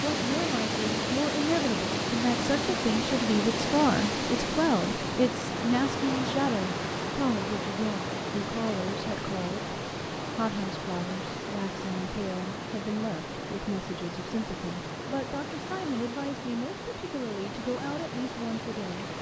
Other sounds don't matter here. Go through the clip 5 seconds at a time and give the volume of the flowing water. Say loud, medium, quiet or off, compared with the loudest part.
loud, loud, medium, medium.